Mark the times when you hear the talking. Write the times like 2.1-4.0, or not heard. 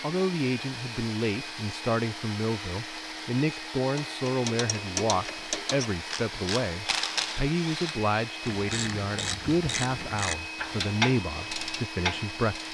0.0-12.6.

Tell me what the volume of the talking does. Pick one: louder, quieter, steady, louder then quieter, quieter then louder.
steady.